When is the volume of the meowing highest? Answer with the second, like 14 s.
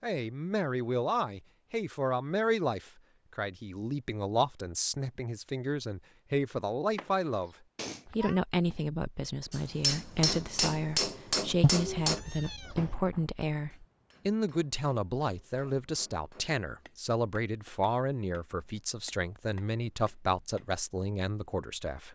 12 s.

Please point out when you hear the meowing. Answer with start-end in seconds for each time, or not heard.
7.8-8.4, 11.6-12.9.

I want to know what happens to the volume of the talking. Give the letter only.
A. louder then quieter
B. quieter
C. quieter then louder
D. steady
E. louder
D.